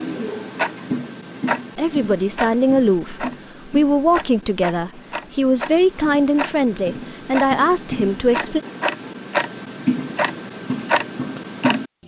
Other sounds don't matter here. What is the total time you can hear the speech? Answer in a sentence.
You can hear the speech for 7 seconds altogether.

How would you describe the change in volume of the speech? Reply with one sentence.
The loudness of the speech stays about the same.